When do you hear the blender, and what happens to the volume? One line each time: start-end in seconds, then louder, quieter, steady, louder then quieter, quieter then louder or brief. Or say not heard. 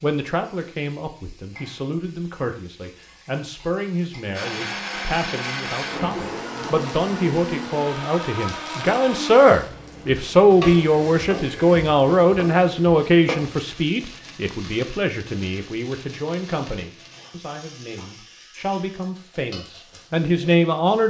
4.3-9.3 steady.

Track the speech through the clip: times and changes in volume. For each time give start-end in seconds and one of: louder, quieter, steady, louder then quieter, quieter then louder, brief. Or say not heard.
0.0-21.0 louder then quieter.